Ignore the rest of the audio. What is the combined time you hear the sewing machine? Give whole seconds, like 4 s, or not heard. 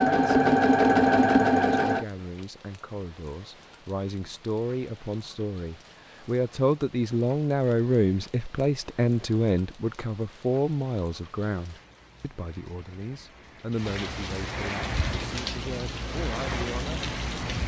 2 s.